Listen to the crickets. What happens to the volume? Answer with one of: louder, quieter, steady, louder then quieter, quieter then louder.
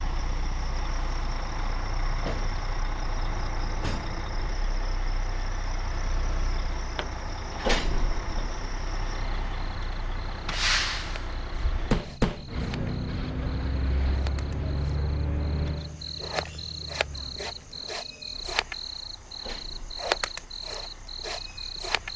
louder.